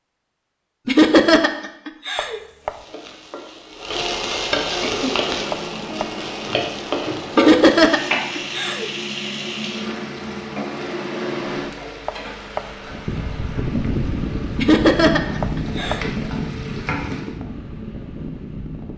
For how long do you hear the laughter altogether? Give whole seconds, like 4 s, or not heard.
5 s.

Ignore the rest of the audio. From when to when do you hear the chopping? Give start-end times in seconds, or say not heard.
2.1-2.9, 5.5-6.2, 12.1-12.8, 15.4-16.1.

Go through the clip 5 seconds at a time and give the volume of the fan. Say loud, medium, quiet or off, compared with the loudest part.
off, medium, loud, loud.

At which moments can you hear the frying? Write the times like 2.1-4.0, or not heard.
2.6-17.4.